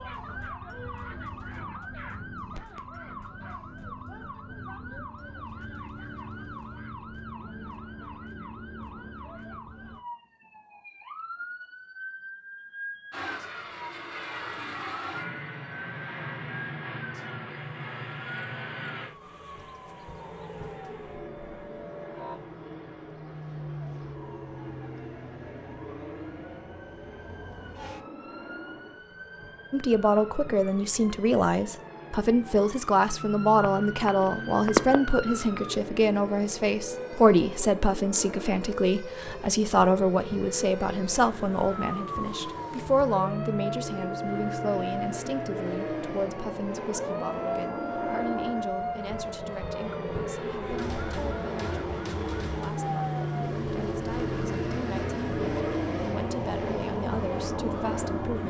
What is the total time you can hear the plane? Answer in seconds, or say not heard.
45 s.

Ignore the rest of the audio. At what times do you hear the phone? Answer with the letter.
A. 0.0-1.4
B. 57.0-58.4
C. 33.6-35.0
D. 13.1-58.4
C.